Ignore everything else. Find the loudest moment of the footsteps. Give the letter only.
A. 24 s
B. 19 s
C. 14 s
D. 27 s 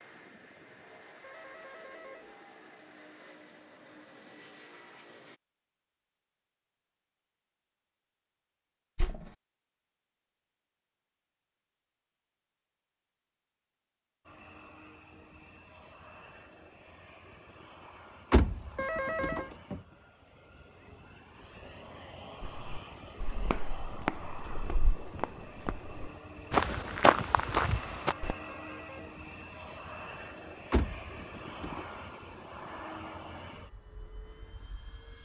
D.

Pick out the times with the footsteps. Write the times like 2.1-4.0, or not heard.
22.4-28.4.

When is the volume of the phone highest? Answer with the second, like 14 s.
19 s.